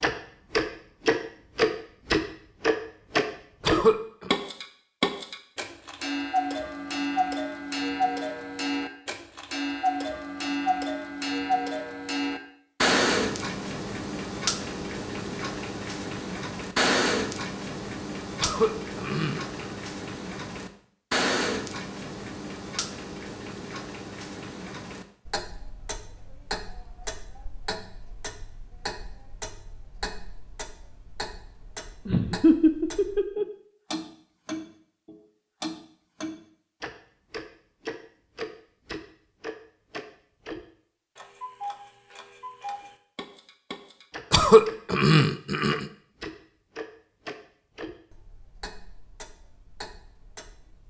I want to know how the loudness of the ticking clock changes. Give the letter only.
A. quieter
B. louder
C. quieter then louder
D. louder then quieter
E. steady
A.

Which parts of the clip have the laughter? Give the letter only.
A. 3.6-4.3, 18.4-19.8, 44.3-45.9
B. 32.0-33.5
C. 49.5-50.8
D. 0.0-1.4
B.